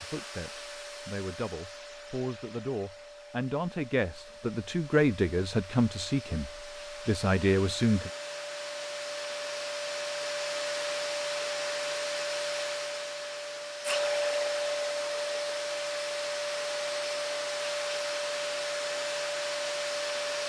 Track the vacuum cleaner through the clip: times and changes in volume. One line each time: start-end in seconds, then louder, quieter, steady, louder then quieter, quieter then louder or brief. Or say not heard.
0.0-20.4 louder.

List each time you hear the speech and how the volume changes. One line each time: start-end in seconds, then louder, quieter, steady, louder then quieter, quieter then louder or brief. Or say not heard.
0.0-8.1 louder.